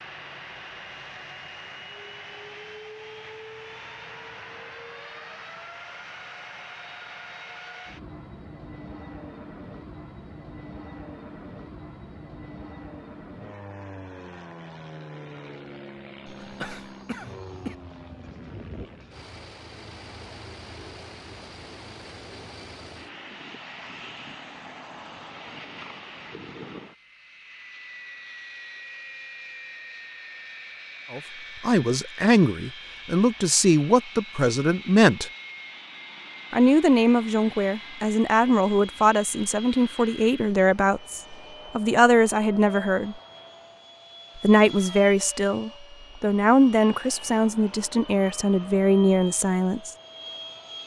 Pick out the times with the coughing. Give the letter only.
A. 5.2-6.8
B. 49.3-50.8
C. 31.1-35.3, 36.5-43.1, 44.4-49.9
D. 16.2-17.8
D.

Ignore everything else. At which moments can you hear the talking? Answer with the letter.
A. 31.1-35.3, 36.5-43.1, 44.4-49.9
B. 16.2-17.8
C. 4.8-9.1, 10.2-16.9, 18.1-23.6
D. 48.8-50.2
A.